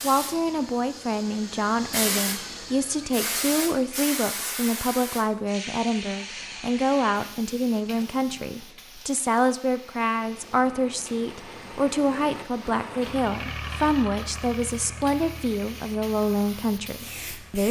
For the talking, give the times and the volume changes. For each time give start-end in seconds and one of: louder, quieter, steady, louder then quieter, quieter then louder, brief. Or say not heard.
0.0-17.6 steady.